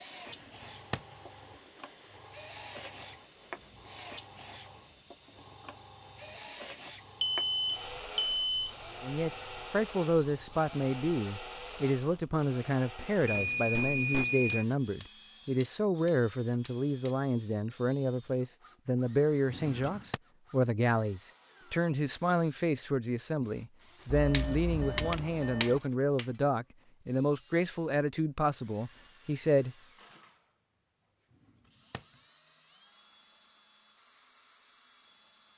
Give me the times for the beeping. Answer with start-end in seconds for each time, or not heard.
7.2-8.8, 13.2-14.7, 24.1-25.8.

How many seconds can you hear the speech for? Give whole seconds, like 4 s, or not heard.
21 s.